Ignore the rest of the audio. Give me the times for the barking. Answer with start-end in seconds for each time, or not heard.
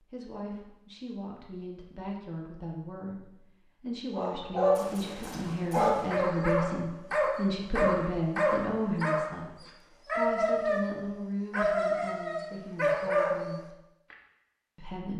4.1-14.2.